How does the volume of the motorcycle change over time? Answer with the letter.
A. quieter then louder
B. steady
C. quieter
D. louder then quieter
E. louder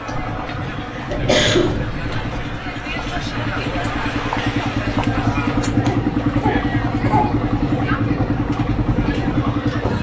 E.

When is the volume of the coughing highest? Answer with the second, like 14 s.
1 s.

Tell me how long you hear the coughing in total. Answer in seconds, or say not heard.
3 s.